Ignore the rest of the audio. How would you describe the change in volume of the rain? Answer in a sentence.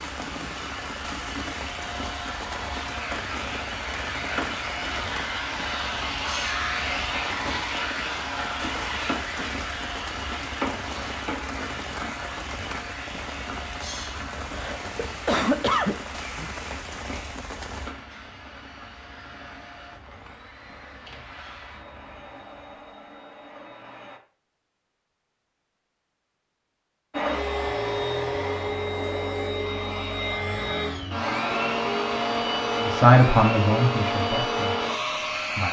The loudness of the rain goes down.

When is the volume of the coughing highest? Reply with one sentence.
The volume of the coughing peaks at 16 seconds.